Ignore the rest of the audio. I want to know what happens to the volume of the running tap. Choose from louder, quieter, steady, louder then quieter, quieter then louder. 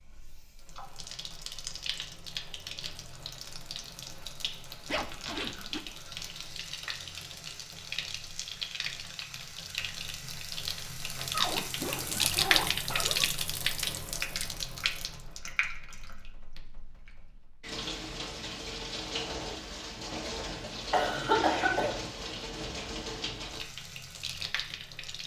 louder then quieter.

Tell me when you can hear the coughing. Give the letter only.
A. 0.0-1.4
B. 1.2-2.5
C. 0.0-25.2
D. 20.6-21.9
D.